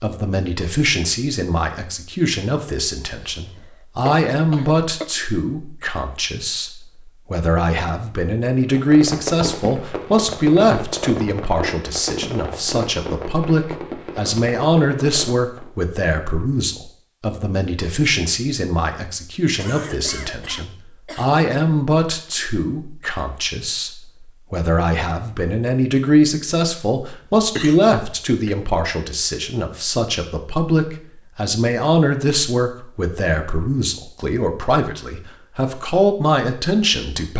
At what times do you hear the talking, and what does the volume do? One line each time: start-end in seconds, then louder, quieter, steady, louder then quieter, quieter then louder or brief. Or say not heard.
0.0-37.3 steady.